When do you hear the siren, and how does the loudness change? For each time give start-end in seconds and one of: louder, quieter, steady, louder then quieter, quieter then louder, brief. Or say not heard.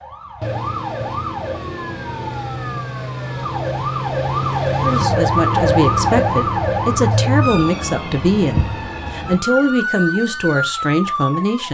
0.0-11.7 louder then quieter.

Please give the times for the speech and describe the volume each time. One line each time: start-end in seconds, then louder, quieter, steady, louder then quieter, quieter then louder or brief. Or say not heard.
4.8-11.7 steady.